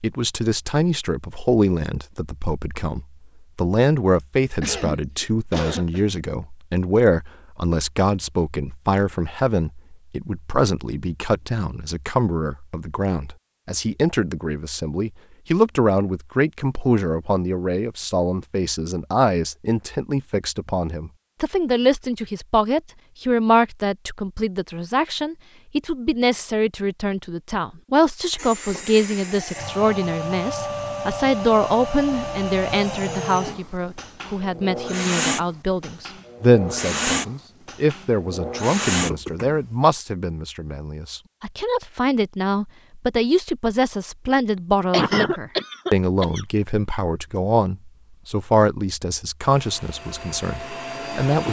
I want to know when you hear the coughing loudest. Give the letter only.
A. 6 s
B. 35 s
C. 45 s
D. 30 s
C.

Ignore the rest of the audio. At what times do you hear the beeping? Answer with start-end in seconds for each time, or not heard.
not heard.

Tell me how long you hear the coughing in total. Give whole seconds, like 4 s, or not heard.
4 s.